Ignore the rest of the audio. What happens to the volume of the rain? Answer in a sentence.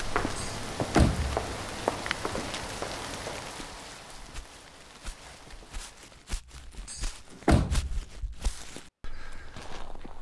The volume of the rain goes down.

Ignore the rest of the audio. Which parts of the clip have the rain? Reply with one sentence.
You can hear the rain from 0.0 to 6.4 s.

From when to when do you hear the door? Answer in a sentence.
You can hear the door from 0.3 to 1.4 s and from 6.8 to 8.1 s.